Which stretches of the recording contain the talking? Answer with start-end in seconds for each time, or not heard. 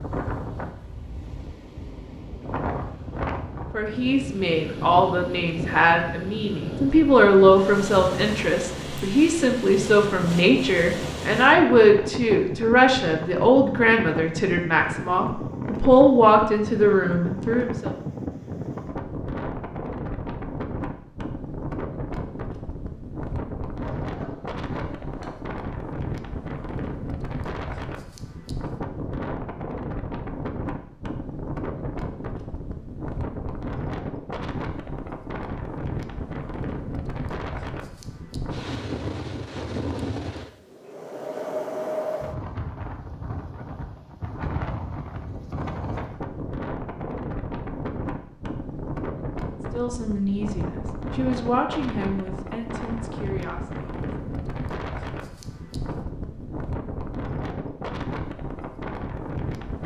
3.7-17.9, 49.7-53.9.